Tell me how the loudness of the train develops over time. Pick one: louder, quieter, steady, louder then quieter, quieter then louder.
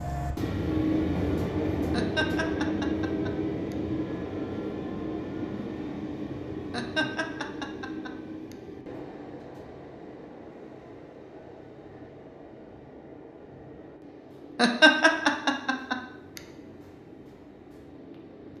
quieter.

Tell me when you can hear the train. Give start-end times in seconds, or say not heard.
0.0-18.5.